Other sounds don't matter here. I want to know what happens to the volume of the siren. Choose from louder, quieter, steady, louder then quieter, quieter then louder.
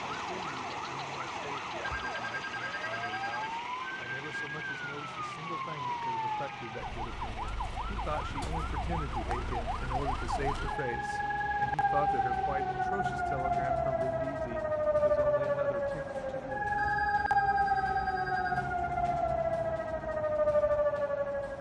louder.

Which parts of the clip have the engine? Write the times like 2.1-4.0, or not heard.
0.0-12.9.